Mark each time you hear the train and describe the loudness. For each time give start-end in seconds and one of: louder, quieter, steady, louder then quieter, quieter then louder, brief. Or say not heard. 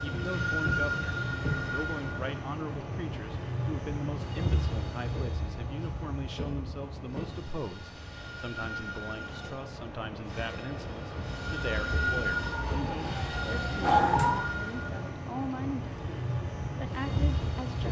0.0-17.8 quieter then louder.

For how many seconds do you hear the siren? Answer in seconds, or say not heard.
2 s.